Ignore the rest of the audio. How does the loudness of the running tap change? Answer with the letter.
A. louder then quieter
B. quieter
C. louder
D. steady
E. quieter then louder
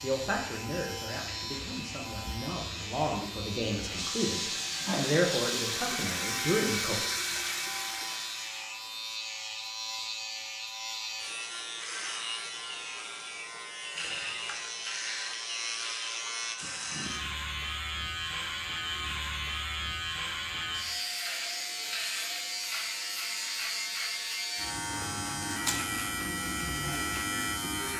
C.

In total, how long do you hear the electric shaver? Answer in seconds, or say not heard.
28 s.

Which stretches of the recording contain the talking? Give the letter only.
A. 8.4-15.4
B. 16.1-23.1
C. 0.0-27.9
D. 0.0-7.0
D.